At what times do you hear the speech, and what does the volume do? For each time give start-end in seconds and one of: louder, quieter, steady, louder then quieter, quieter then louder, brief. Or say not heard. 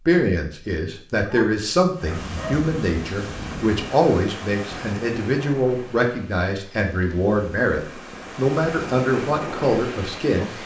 0.1-10.6 steady.